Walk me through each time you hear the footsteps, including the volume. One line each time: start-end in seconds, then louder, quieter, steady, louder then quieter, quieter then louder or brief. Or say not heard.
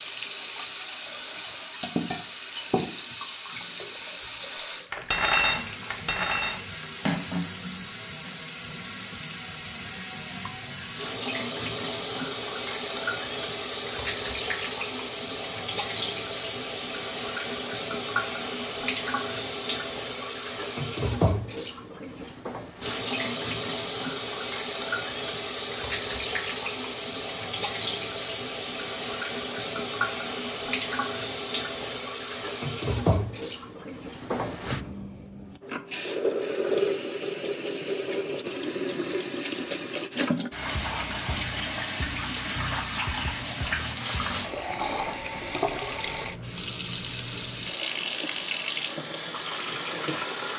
not heard.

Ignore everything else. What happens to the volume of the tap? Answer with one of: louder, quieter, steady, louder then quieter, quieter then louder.
steady.